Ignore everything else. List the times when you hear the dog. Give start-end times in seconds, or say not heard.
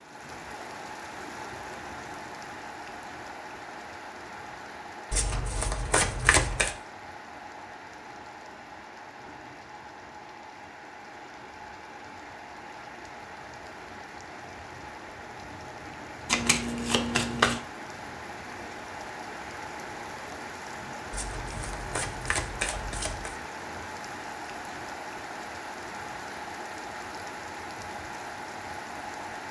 not heard.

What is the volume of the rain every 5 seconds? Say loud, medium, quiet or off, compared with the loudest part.
loud, medium, medium, loud, loud, loud.